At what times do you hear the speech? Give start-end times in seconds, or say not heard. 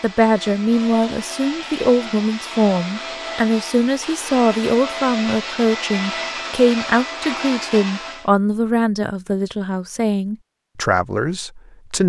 0.0-12.0.